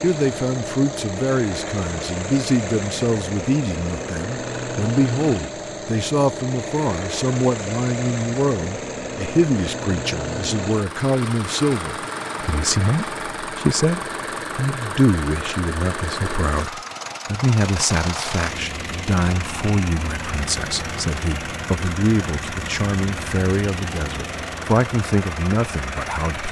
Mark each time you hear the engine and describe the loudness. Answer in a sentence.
You can hear the engine from 0.0 to 26.4 s, at a steady volume.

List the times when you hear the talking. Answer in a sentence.
The talking can be heard from 0.0 to 26.4 s.